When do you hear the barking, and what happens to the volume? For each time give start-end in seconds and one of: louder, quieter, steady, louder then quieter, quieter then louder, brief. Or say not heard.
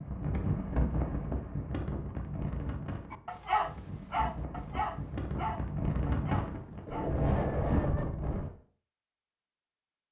3.1-8.2 quieter.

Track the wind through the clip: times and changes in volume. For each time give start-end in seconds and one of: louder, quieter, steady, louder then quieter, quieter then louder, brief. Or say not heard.
0.0-8.5 quieter then louder.